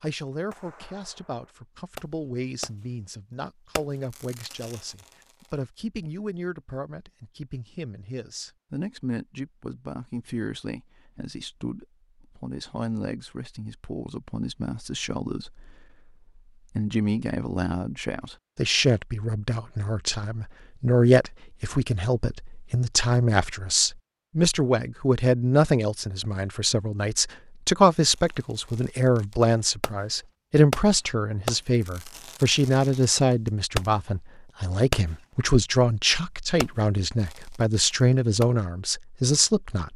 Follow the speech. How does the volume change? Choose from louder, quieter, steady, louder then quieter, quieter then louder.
louder.